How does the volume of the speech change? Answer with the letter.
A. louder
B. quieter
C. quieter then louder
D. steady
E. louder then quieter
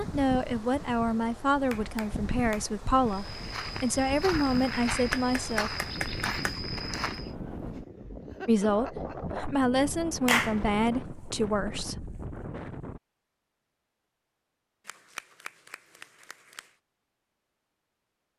D.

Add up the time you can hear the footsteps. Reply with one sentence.
The footsteps can be heard for 4 seconds in total.